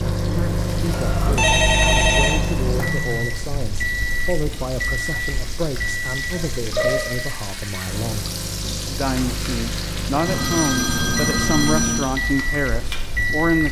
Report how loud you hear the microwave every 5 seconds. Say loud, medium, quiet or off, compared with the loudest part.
loud, medium, loud.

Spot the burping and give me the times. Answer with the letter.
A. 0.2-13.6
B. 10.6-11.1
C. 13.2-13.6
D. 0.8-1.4
D.